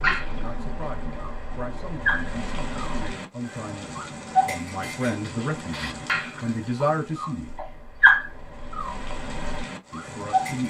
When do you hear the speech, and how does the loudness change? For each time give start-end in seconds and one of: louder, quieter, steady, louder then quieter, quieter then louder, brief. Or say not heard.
0.0-7.5 louder
9.9-10.6 brief.